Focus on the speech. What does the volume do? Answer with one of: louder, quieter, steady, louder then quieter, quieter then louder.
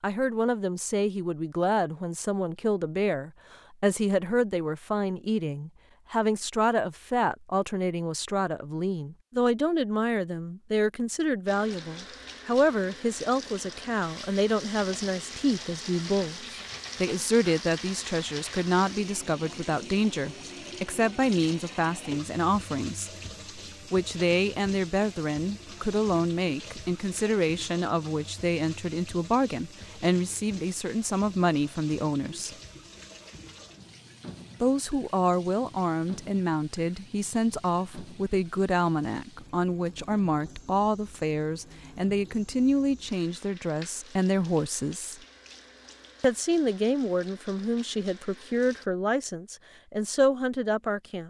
steady.